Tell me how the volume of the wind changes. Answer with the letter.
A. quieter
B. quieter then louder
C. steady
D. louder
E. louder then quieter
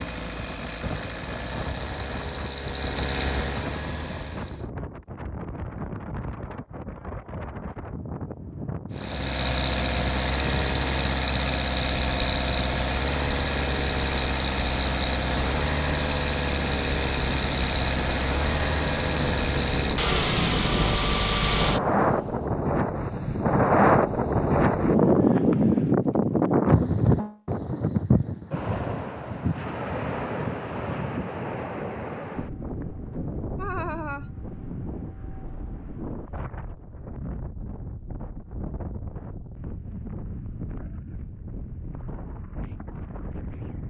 E.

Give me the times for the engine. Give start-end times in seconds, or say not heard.
0.0-4.7, 8.9-22.4.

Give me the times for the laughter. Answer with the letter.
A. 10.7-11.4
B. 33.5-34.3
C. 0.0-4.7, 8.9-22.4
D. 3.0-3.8
B.